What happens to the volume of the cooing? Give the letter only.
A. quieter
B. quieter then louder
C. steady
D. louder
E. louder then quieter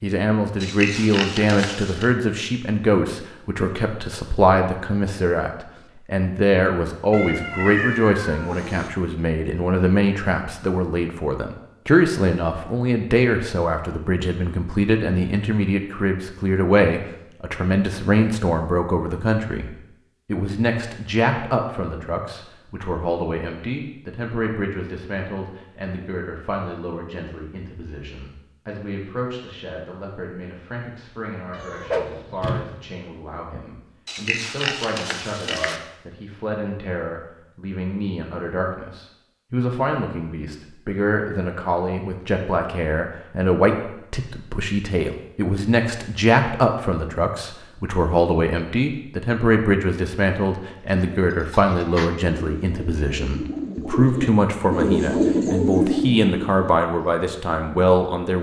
D.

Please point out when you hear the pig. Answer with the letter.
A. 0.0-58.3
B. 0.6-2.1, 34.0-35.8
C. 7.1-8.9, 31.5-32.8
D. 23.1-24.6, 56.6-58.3
B.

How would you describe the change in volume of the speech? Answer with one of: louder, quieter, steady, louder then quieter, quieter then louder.
quieter then louder.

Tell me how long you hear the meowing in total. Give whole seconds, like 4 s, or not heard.
3 s.